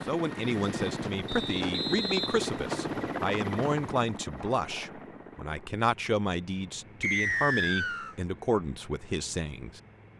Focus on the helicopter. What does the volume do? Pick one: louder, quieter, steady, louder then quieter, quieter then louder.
quieter.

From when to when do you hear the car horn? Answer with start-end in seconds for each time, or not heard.
not heard.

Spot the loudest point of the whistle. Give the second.
7 s.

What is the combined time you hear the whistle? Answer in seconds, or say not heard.
3 s.